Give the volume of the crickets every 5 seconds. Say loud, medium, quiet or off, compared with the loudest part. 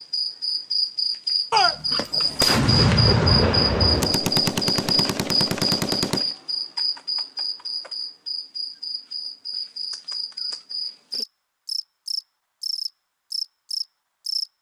loud, medium, medium.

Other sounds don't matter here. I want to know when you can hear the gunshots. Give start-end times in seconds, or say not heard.
1.5-6.3.